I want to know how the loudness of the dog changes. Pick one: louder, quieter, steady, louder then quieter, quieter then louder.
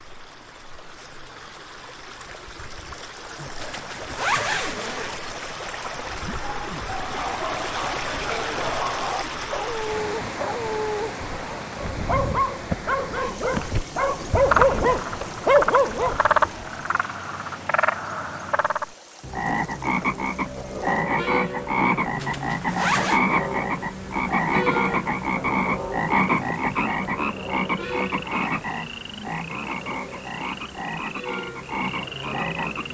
louder.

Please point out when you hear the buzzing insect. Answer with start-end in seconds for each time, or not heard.
not heard.